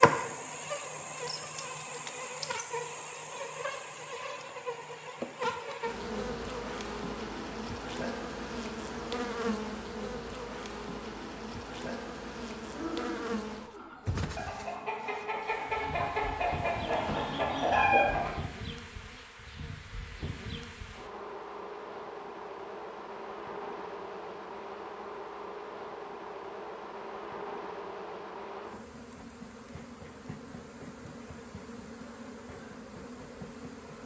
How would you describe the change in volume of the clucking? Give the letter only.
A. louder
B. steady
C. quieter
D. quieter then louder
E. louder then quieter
A.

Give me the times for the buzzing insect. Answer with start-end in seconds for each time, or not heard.
0.0-34.0.